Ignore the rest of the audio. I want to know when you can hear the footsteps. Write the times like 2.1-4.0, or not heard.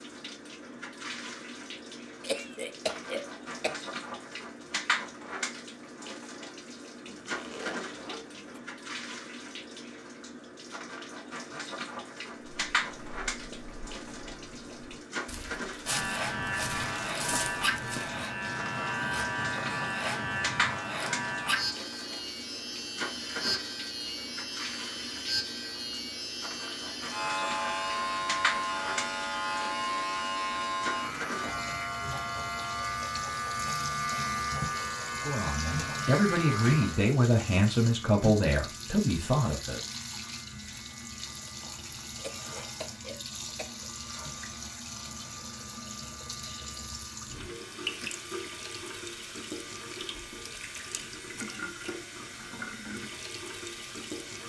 12.5-18.2.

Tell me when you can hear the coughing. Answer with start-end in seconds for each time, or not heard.
2.2-3.8, 42.1-43.9.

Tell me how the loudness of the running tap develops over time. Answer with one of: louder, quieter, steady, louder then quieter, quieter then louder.
steady.